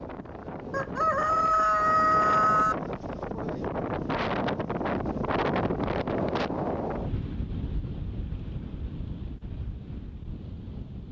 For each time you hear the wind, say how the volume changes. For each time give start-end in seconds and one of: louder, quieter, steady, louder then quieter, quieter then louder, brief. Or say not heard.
0.0-11.0 louder then quieter.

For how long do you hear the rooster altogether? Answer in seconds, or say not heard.
2 s.